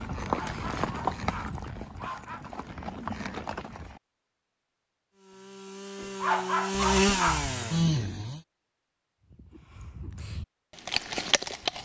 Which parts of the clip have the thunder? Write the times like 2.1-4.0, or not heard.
not heard.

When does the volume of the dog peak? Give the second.
6 s.